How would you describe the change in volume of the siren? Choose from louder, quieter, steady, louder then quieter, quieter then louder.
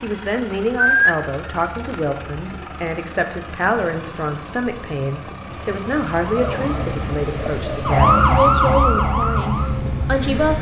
louder then quieter.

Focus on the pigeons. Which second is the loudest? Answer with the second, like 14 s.
1 s.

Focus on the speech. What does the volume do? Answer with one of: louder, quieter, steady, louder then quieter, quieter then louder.
steady.